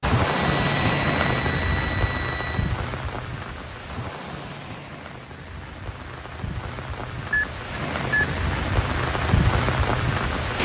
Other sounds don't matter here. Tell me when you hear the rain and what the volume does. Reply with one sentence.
The rain can be heard from 0.0 to 10.5 s, getting quieter then louder.